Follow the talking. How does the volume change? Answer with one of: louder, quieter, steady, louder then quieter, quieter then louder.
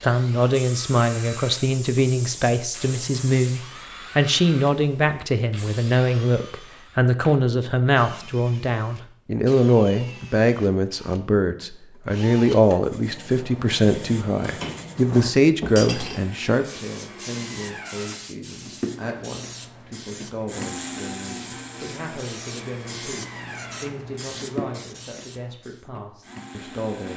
quieter.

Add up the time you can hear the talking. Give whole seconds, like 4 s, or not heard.
27 s.